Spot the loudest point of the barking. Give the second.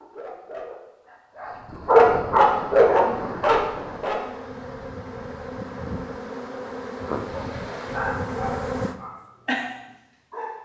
2 s.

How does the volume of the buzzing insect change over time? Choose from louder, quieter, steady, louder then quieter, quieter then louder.
louder.